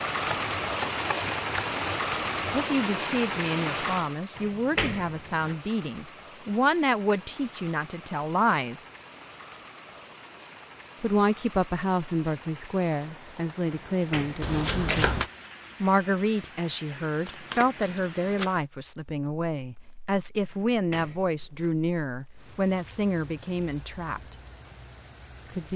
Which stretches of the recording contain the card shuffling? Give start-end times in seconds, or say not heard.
0.2-2.6, 14.4-15.3, 17.2-18.5.